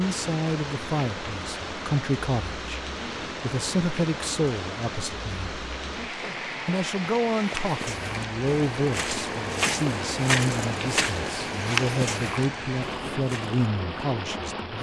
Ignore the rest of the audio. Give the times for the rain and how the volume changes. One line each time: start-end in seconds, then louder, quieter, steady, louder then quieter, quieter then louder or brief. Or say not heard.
0.0-14.7 steady.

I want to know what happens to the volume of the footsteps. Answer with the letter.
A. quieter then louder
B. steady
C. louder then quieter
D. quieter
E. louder
C.